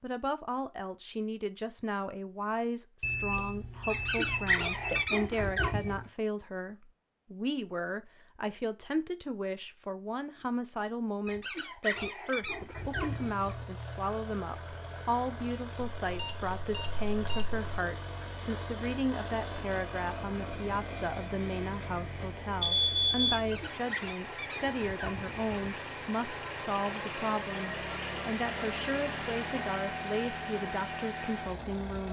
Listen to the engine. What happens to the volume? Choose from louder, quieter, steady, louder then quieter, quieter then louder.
louder.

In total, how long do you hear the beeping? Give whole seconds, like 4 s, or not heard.
4 s.